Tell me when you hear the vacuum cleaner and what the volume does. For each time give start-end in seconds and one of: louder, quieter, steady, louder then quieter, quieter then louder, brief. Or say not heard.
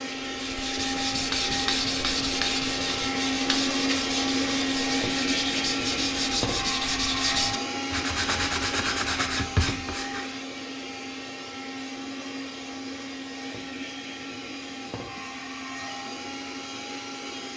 0.0-17.5 quieter.